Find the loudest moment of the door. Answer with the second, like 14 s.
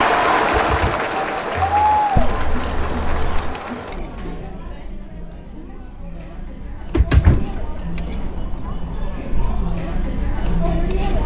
7 s.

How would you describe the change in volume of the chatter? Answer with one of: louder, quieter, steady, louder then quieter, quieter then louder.
quieter then louder.